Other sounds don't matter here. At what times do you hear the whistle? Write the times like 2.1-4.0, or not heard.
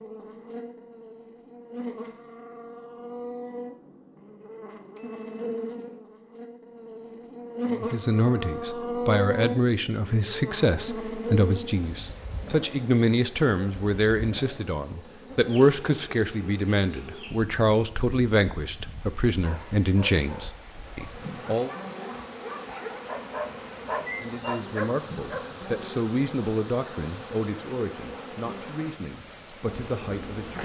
not heard.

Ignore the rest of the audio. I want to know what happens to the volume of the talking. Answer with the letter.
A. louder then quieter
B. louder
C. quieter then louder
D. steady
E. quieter
E.